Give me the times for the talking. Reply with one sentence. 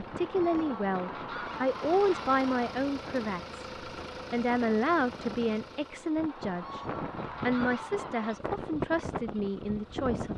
The talking can be heard from 0.0 to 3.6 s, from 4.3 to 6.8 s and from 7.4 to 10.3 s.